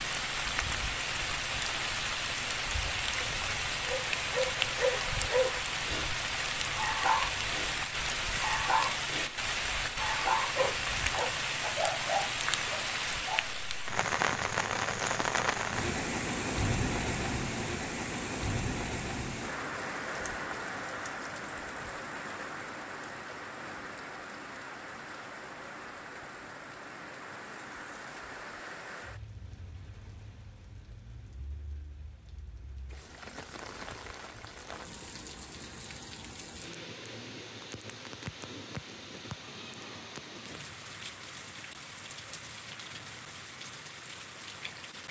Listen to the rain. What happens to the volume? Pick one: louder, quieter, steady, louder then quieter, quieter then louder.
quieter.